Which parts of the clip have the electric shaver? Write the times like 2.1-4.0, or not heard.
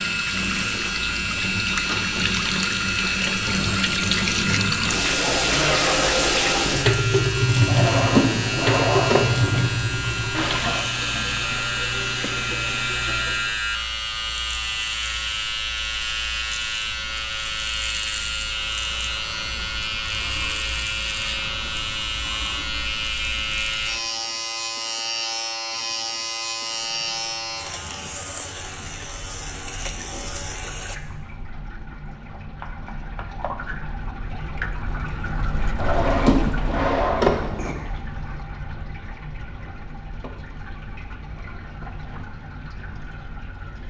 0.0-31.0.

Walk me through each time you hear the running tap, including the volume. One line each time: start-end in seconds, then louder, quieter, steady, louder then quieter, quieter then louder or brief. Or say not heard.
0.0-13.7 louder then quieter
26.5-43.8 louder then quieter.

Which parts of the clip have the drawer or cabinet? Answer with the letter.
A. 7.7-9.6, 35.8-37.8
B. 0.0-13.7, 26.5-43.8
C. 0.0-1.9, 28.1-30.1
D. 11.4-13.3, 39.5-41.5
A.